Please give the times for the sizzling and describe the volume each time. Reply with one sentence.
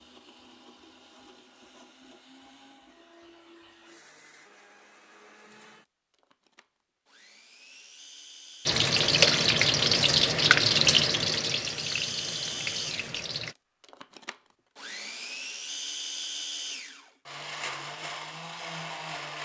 You can hear the sizzling from 8.7 to 13.6 s, getting quieter.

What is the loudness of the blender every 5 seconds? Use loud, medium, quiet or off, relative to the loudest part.
quiet, quiet, loud, loud.